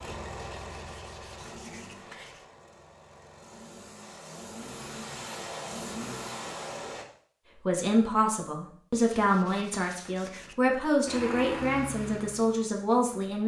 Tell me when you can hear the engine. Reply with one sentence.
You can hear the engine from 0.0 to 7.0 s and from 11.1 to 13.4 s.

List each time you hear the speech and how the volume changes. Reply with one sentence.
The speech can be heard from 7.5 to 13.4 s, at a steady volume.